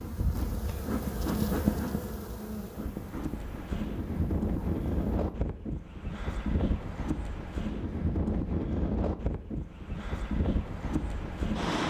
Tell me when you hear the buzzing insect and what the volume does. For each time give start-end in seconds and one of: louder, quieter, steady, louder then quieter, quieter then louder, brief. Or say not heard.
0.0-5.2 louder then quieter.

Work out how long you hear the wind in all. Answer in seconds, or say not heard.
9 s.